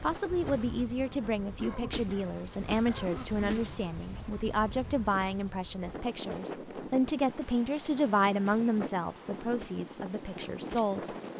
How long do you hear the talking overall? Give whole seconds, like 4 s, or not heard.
11 s.